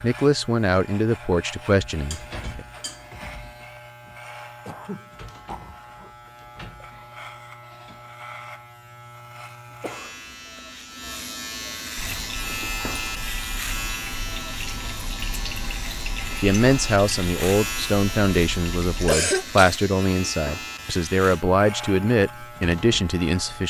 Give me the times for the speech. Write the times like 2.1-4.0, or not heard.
0.0-2.6, 16.4-23.6.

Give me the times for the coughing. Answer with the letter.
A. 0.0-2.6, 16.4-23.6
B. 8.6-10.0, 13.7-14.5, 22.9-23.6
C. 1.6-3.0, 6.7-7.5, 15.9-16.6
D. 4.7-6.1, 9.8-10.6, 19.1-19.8
D.